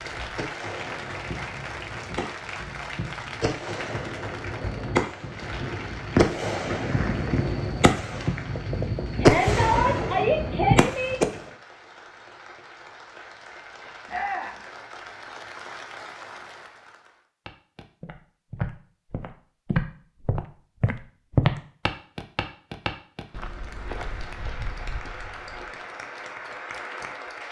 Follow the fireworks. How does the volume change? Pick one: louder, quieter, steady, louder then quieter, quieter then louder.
louder.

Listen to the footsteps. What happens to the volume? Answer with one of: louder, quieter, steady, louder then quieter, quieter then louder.
louder then quieter.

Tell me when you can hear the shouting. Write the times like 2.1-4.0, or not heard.
9.2-11.2, 14.1-14.6.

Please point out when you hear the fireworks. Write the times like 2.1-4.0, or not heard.
0.0-11.4.